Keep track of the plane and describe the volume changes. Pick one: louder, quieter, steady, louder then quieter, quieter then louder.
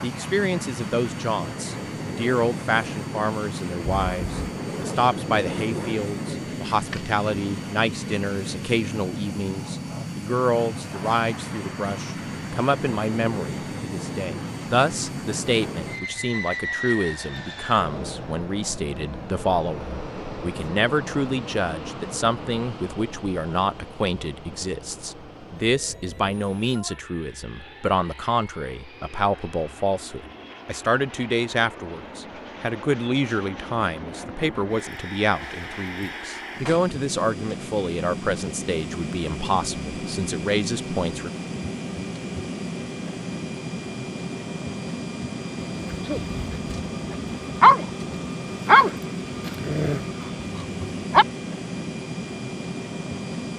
quieter then louder.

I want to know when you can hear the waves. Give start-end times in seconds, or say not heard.
not heard.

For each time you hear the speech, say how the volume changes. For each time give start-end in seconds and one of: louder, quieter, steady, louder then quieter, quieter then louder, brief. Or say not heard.
0.0-41.3 steady.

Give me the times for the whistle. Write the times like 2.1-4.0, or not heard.
not heard.